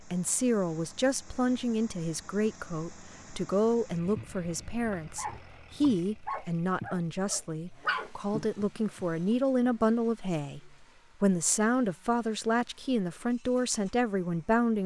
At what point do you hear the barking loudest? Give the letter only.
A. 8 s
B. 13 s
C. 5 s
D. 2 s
A.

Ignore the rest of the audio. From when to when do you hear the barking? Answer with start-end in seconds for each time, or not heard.
4.0-9.1.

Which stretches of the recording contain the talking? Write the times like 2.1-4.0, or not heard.
0.0-14.8.